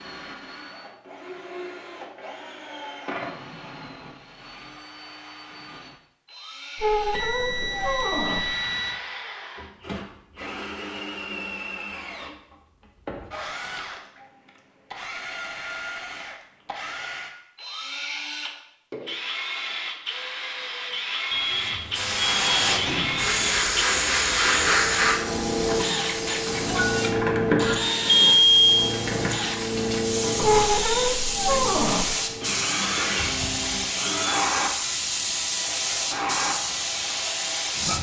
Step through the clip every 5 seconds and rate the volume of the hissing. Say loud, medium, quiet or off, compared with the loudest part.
off, off, off, off, loud, medium, loud, loud.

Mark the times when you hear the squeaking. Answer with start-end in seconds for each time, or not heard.
6.8-8.6, 30.4-32.1.